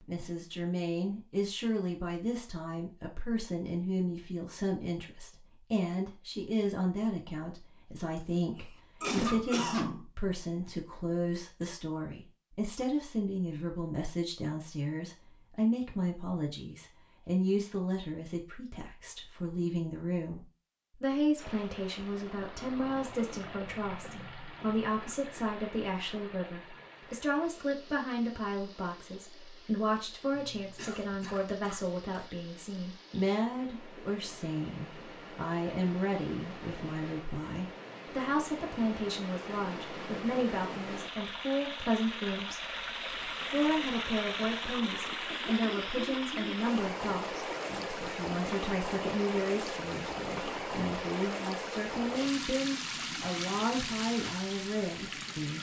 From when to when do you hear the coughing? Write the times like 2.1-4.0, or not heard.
9.0-10.1, 30.3-32.3, 45.2-46.6.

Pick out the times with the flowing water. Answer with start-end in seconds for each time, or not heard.
21.4-55.5.